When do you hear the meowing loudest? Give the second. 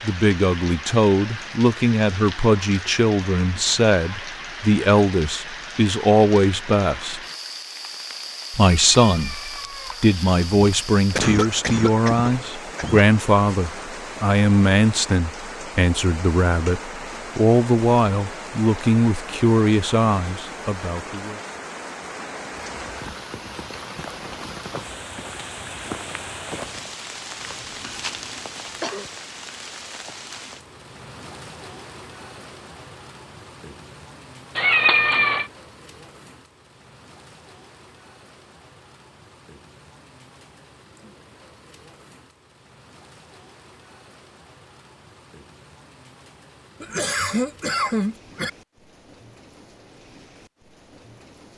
35 s.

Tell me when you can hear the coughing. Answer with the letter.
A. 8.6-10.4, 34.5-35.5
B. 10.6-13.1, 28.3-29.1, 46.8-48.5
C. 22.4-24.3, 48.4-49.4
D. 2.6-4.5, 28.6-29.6
B.